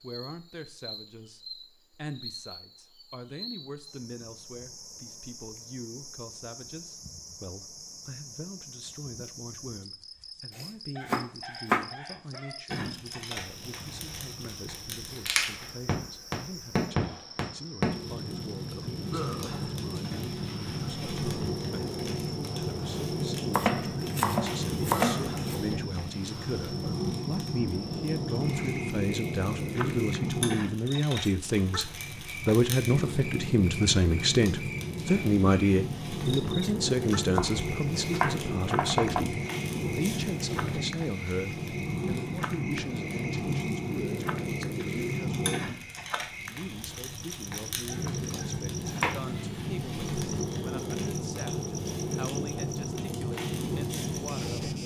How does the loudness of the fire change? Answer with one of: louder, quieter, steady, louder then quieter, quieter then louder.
steady.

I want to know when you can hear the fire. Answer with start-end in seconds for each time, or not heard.
12.7-54.8.